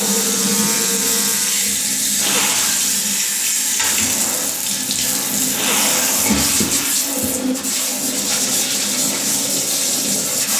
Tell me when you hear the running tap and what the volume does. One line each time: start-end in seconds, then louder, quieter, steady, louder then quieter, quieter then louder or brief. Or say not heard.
0.0-10.5 steady.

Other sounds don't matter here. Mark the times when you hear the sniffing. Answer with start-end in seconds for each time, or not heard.
2.1-2.9, 5.5-7.0.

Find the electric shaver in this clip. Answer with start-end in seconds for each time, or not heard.
0.0-1.6.